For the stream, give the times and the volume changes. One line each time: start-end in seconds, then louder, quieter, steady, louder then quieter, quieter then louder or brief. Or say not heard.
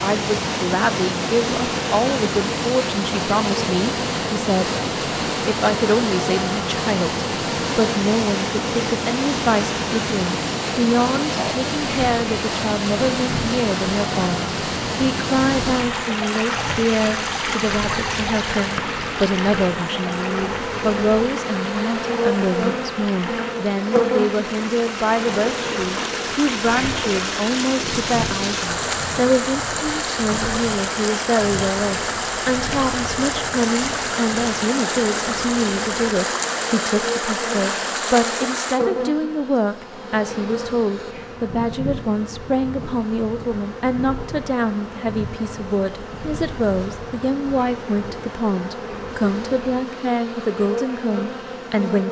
0.0-38.8 steady.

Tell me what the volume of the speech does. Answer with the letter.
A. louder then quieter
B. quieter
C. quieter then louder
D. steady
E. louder
D.